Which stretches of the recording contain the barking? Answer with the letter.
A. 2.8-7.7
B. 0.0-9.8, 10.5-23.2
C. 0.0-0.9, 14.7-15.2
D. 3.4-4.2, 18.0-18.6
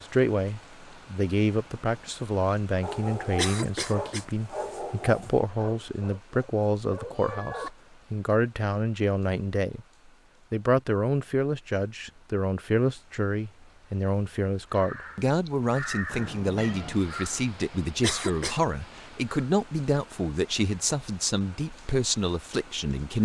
A.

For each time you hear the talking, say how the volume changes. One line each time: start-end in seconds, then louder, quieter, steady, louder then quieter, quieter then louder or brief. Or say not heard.
0.0-9.8 steady
10.5-23.2 steady.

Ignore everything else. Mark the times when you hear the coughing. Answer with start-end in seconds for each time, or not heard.
3.4-4.2, 18.0-18.6.